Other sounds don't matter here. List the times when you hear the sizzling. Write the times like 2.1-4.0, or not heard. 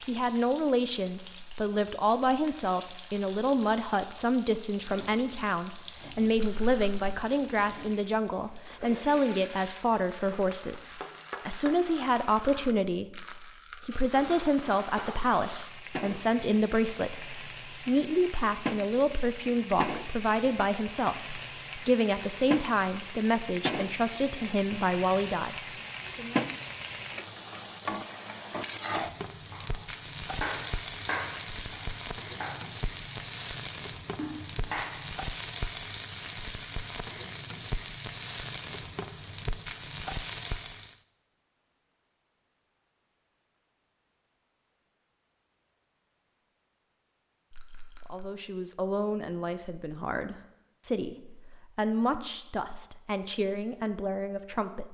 0.0-41.0.